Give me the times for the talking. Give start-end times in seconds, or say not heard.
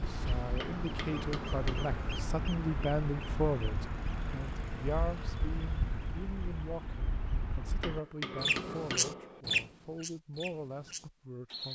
0.0-11.7.